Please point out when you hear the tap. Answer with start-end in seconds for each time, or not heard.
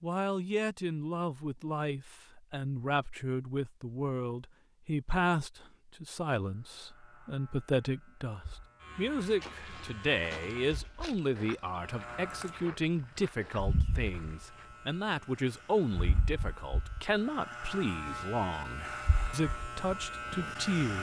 not heard.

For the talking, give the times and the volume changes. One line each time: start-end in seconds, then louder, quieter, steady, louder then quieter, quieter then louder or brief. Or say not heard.
0.0-20.9 steady.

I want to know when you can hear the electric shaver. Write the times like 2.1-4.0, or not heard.
6.4-20.9.